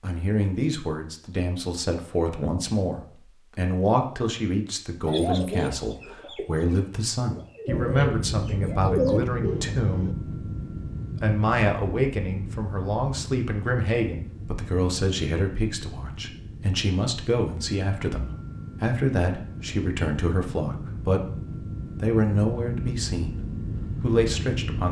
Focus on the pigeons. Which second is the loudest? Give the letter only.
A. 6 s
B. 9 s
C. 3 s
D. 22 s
B.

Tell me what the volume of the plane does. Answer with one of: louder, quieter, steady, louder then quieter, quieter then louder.
quieter then louder.